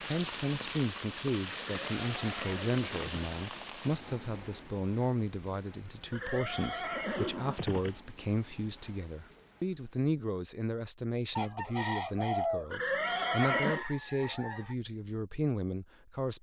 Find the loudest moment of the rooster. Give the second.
12 s.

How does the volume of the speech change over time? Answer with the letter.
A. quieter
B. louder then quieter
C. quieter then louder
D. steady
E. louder
D.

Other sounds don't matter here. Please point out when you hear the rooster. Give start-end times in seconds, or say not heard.
11.3-14.8.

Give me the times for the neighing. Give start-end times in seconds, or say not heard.
1.8-3.3, 6.1-8.0, 12.7-13.8.